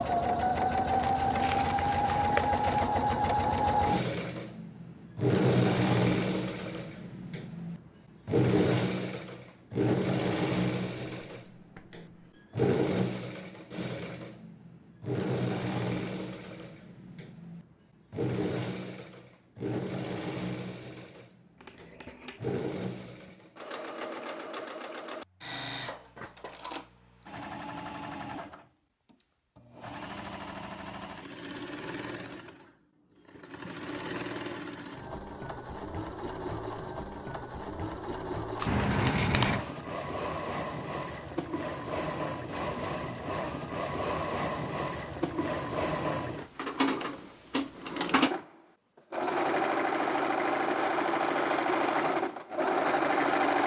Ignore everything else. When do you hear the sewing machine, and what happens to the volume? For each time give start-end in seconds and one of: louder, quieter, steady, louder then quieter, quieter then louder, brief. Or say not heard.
0.0-53.6 quieter then louder.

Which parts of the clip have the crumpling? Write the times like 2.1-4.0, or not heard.
0.8-2.9, 38.5-39.8.